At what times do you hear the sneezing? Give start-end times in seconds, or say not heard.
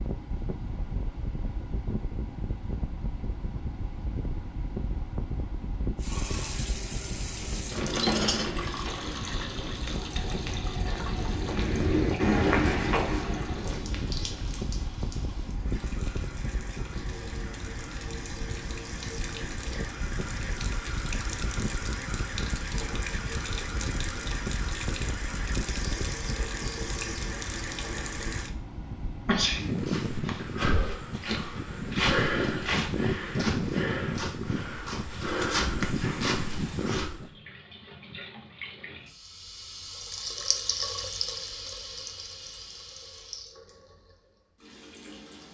29.2-29.7.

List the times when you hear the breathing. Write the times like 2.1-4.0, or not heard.
not heard.